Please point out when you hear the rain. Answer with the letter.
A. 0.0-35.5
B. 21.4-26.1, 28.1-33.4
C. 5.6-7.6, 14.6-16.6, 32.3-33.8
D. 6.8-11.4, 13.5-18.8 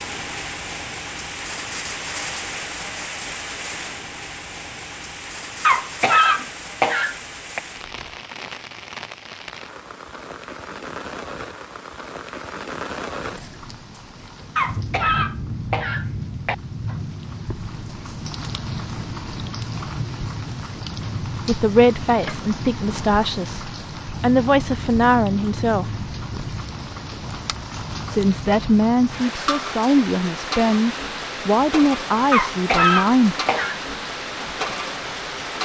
A.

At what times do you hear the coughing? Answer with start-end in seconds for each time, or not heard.
5.6-7.6, 14.6-16.6, 32.3-33.8.